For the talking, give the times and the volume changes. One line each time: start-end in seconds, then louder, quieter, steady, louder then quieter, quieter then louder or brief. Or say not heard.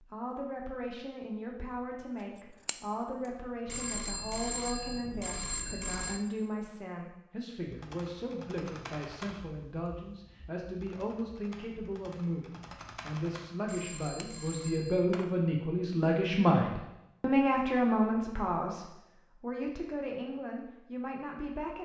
0.0-21.8 louder.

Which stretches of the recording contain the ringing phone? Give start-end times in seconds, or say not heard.
3.6-6.2, 13.7-15.2.